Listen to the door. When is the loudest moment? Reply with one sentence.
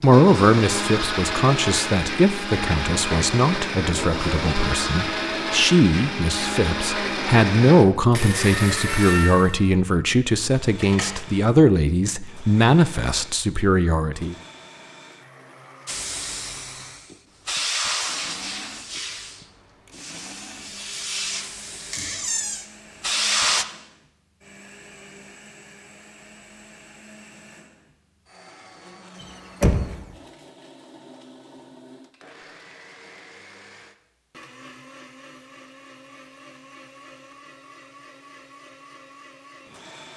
The volume of the door peaks at 30 seconds.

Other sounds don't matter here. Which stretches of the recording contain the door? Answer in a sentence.
The door can be heard from 10.8 to 11.2 s, from 21.9 to 22.6 s and from 29.2 to 30.1 s.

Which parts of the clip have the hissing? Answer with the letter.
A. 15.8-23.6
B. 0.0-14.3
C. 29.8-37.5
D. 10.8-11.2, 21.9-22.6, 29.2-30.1
A.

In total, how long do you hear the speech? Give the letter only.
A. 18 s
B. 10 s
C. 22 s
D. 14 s
D.